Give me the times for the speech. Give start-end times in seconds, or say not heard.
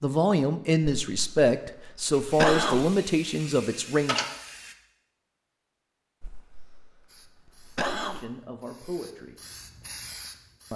0.0-4.2, 8.1-9.3.